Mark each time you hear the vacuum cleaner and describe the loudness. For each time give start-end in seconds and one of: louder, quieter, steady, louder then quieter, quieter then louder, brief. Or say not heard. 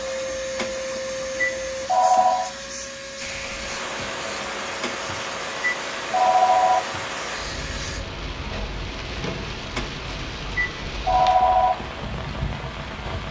0.0-8.1 quieter.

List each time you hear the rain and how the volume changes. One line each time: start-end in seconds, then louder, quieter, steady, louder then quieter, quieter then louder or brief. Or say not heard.
3.1-13.2 steady.